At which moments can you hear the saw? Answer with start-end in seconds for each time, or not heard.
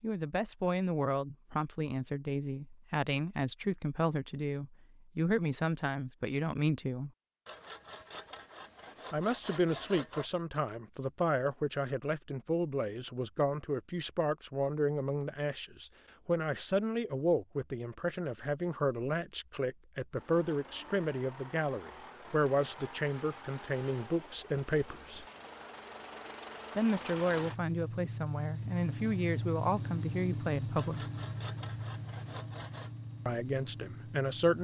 7.5-10.3, 30.8-32.9.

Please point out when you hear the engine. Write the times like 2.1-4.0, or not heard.
20.1-34.5.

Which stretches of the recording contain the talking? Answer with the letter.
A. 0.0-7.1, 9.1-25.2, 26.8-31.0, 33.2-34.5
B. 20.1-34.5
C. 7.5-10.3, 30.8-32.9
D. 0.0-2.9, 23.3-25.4
A.